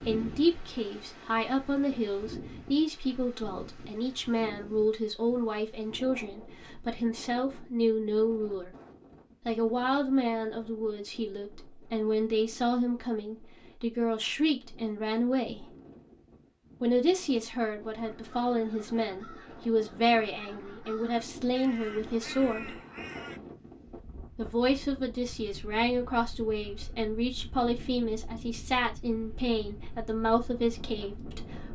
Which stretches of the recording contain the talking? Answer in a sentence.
The talking can be heard from 0.0 to 8.7 s, from 9.4 to 15.7 s, from 16.8 to 22.8 s and from 24.4 to 31.6 s.